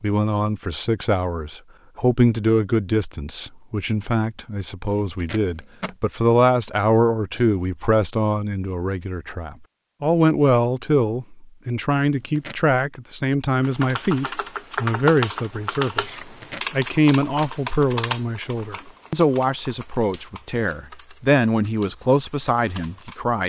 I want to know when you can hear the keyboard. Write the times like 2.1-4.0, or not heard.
13.6-23.2.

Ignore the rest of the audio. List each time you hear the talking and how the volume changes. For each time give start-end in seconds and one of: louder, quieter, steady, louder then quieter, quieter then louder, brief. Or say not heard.
0.0-23.4 steady.